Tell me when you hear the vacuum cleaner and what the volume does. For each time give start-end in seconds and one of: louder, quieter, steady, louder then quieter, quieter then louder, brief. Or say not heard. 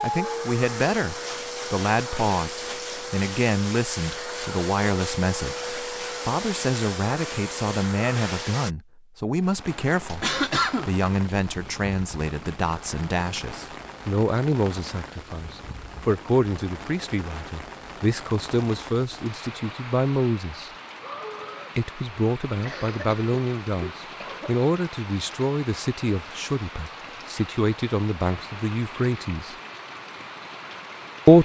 0.0-8.8 steady.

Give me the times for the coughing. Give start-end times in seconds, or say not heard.
9.7-10.9, 22.6-24.6.